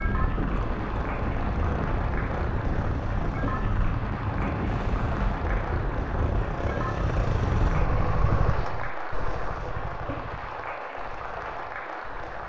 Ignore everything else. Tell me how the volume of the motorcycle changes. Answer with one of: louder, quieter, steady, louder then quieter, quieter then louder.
louder then quieter.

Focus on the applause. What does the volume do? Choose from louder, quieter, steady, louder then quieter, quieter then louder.
steady.